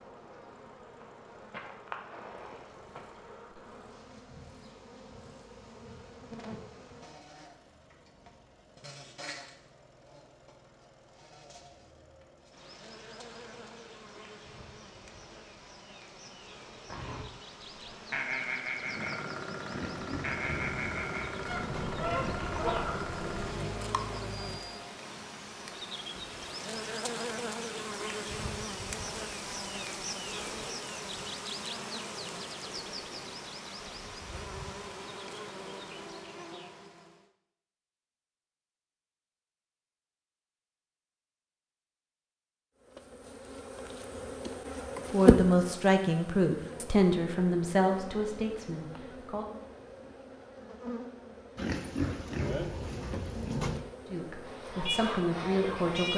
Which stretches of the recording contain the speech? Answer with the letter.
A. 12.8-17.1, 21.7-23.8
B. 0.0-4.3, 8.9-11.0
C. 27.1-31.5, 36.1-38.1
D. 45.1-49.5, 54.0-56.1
D.